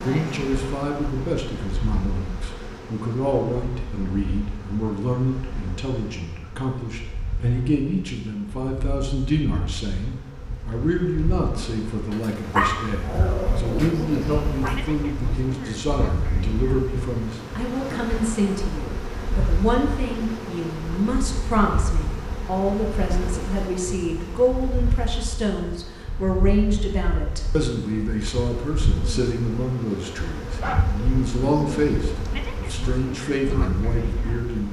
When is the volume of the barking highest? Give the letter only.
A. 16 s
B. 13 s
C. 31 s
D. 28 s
B.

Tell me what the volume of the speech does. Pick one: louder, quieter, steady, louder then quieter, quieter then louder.
steady.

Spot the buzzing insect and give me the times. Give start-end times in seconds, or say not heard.
0.0-34.6.